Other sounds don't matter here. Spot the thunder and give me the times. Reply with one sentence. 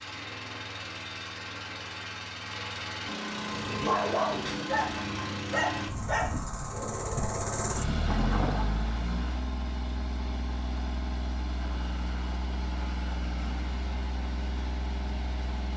The thunder can be heard from 8.1 to 8.6 s.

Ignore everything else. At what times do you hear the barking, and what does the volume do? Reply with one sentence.
The barking can be heard from 3.3 to 8.8 s, getting quieter.